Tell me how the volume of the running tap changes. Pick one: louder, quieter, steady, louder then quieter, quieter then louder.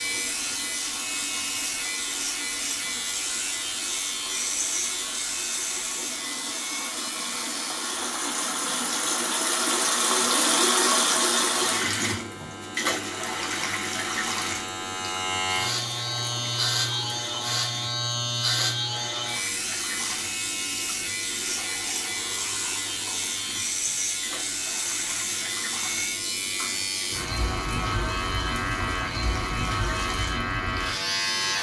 louder then quieter.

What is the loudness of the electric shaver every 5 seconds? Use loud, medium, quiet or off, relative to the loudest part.
loud, medium, medium, loud, loud, loud, loud.